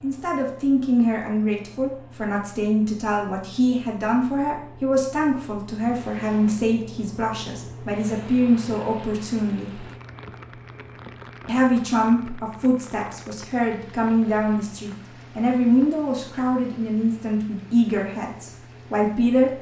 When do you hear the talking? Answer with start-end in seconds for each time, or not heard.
0.0-9.8, 11.4-19.5.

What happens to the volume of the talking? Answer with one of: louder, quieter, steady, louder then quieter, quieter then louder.
steady.